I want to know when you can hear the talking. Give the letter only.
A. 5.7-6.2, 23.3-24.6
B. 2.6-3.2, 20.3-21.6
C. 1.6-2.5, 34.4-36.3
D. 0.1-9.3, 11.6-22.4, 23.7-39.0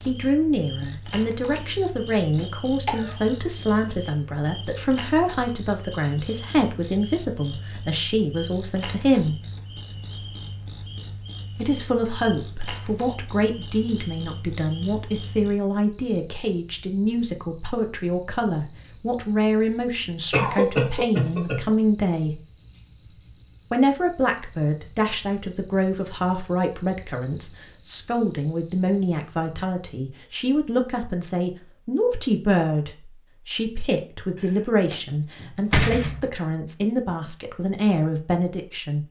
D.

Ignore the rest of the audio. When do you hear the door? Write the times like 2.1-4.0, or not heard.
1.6-2.5, 34.4-36.3.